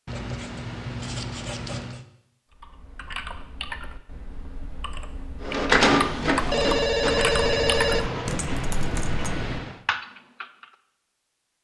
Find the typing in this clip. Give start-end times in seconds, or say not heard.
2.5-10.7.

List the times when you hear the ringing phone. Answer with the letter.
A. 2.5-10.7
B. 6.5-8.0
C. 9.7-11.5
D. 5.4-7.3
B.